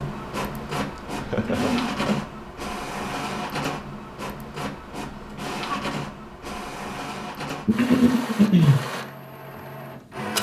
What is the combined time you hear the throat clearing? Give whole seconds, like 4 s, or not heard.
2 s.